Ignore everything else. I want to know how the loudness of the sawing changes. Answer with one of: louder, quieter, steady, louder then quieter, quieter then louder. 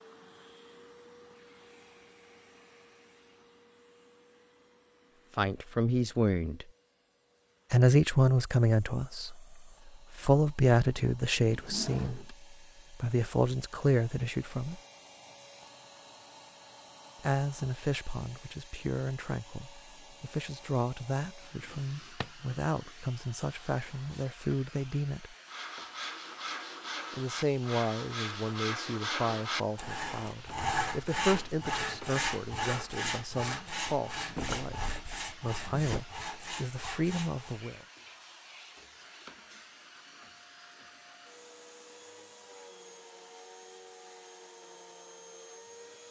louder then quieter.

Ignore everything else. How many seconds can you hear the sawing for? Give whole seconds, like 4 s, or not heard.
12 s.